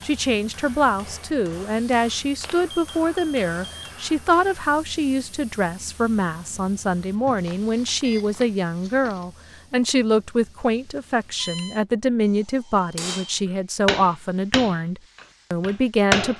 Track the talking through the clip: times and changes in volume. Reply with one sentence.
You can hear the talking from 0.0 to 16.3 s, at a steady volume.